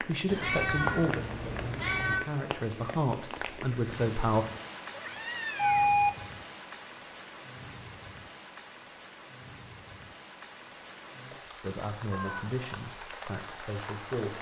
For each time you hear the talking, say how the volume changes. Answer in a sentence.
The talking can be heard from 0.0 to 4.5 s, getting quieter then louder; and briefly from 11.6 to 14.3 s.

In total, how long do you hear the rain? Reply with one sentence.
You can hear the rain for 14 seconds altogether.